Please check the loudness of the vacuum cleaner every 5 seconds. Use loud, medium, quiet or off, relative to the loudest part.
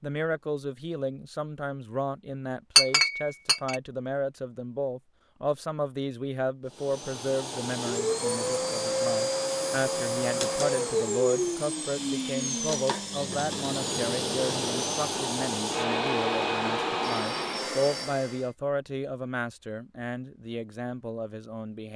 off, loud, loud, loud, off.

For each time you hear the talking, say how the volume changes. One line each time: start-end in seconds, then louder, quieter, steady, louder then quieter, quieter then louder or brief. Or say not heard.
0.0-21.9 steady.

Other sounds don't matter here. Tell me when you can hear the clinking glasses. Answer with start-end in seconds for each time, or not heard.
2.8-3.8.